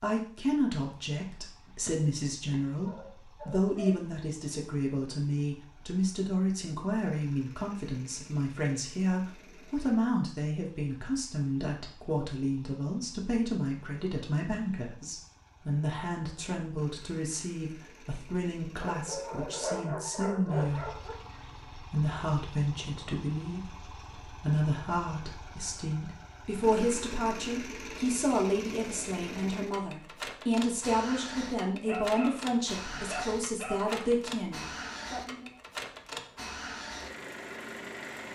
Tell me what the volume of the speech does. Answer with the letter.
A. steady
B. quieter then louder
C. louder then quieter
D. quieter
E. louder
A.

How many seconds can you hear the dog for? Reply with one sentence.
You can hear the dog for 7 seconds altogether.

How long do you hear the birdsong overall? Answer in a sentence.
You can't hear the birdsong here.